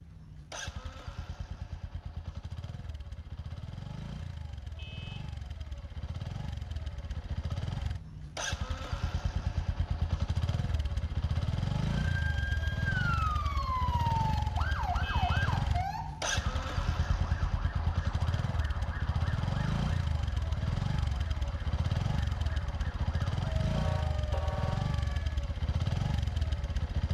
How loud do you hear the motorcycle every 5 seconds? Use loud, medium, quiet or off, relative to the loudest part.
medium, medium, loud, loud, loud, loud.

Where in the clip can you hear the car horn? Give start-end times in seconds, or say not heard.
4.8-5.3, 15.0-15.4, 23.8-24.9.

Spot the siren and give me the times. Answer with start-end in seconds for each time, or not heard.
11.9-25.4.